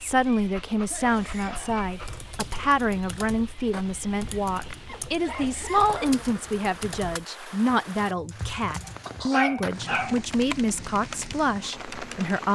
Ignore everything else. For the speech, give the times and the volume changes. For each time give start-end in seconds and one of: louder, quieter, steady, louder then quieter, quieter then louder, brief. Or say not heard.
0.0-12.5 steady.